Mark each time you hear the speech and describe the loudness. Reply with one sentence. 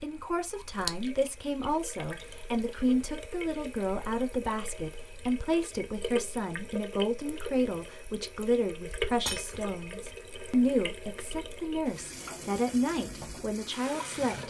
The speech can be heard from 0.0 to 14.4 s, at a steady volume.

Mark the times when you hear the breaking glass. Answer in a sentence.
The breaking glass can be heard from 9.2 to 9.9 s.